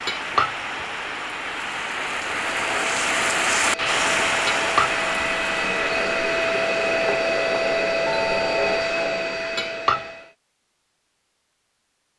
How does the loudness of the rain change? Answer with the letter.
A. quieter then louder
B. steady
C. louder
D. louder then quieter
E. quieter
D.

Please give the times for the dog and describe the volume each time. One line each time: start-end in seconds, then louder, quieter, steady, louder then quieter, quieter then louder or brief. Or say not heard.
not heard.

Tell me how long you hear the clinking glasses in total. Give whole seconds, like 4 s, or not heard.
2 s.